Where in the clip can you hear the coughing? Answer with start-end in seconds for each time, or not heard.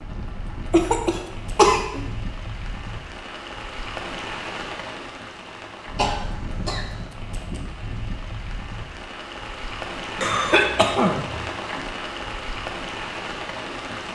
0.7-2.0, 6.0-7.1, 10.2-11.4.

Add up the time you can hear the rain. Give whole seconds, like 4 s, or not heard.
14 s.